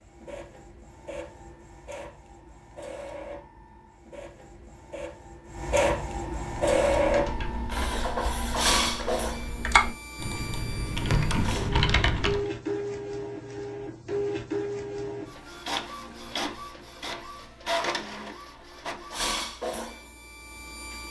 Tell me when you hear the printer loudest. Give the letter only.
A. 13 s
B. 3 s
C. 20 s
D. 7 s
D.